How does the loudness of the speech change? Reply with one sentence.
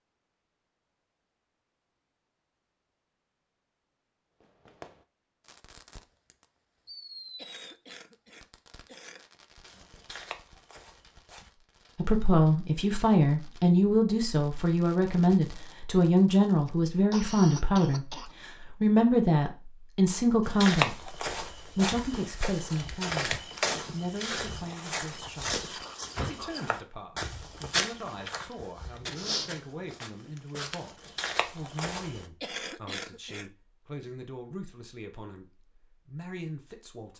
The loudness of the speech goes down.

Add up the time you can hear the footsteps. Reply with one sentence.
The footsteps can be heard for 14 seconds in total.